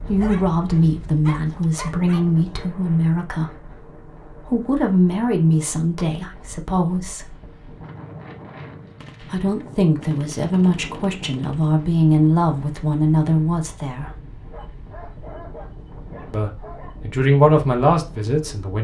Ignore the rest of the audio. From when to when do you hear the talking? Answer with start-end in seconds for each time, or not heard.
0.0-7.3, 9.2-14.2, 16.3-18.8.